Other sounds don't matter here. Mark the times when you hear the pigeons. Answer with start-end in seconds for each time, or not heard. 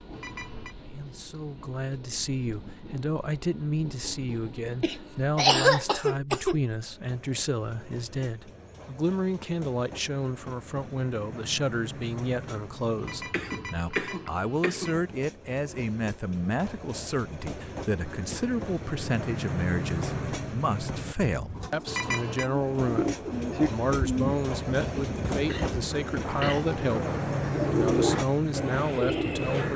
21.6-29.7.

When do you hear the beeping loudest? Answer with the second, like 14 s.
22 s.